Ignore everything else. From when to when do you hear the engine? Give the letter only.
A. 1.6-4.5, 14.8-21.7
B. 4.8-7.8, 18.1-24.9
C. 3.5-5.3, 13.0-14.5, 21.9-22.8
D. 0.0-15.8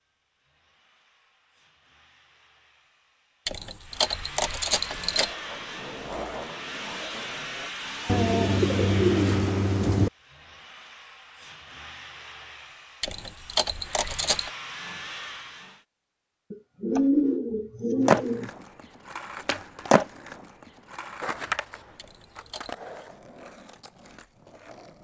D.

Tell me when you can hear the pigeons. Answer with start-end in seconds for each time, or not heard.
8.1-10.1, 16.5-18.5.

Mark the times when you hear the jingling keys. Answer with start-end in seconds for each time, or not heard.
3.5-5.3, 13.0-14.5, 21.9-22.8.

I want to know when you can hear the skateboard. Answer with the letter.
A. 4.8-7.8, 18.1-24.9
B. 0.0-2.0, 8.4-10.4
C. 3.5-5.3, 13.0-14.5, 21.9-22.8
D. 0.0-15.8
A.